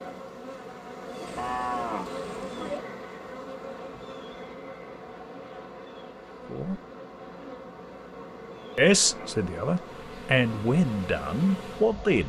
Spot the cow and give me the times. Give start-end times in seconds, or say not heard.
1.2-2.8.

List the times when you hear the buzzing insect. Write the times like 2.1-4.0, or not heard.
0.0-12.2.